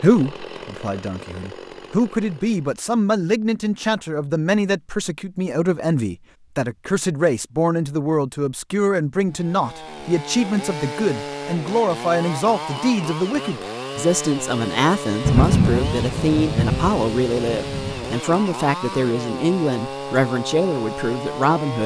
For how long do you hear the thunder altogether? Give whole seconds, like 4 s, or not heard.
3 s.